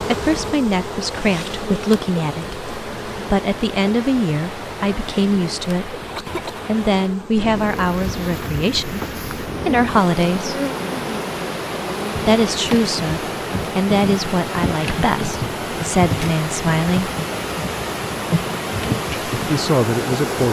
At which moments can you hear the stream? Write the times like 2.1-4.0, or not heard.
0.0-20.4.